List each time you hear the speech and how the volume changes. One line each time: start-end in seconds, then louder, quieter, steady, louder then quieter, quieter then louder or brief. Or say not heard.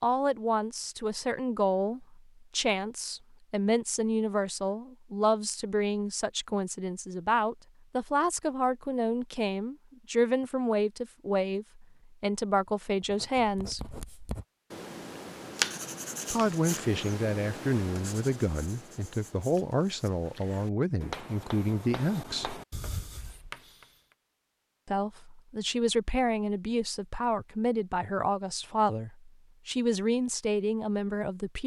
0.0-13.9 steady
16.3-22.6 steady
24.9-31.6 steady.